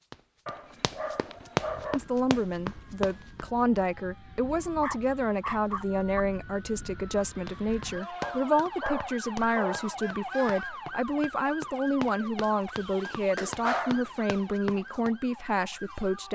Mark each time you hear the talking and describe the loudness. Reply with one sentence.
The talking can be heard from 1.9 to 16.3 s, at a steady volume.